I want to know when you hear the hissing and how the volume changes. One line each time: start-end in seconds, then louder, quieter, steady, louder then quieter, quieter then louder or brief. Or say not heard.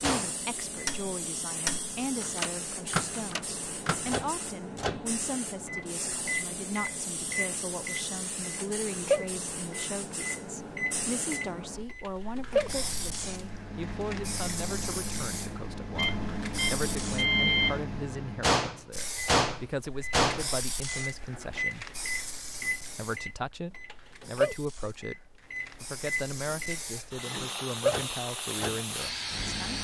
0.0-17.2 steady
18.9-29.7 quieter then louder.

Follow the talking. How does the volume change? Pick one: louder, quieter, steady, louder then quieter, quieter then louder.
steady.